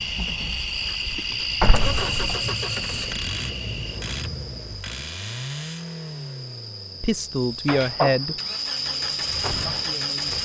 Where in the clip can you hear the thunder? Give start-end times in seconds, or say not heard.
1.6-4.8.